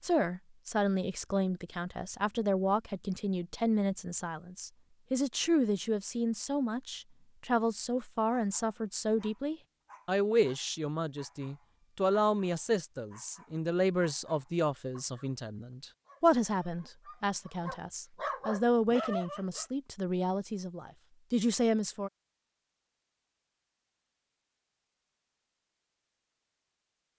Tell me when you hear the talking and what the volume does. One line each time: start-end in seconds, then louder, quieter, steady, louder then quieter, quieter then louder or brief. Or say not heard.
0.0-22.1 steady.